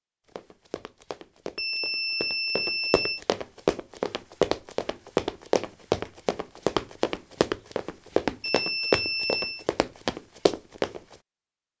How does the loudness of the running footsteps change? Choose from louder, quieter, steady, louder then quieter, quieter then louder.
louder.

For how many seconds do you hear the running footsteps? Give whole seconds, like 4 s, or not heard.
11 s.